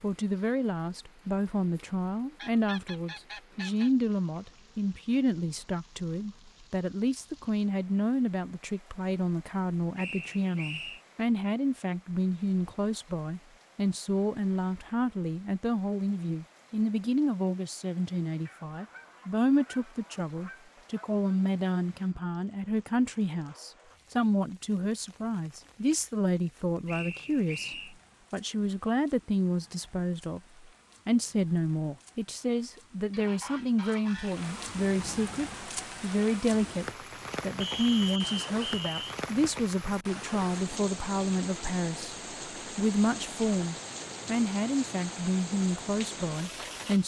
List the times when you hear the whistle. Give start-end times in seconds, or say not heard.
9.9-11.0, 26.9-27.9, 37.6-39.1.